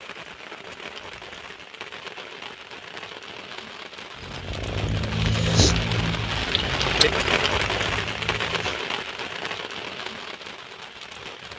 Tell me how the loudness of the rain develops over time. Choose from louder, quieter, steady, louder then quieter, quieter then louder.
louder then quieter.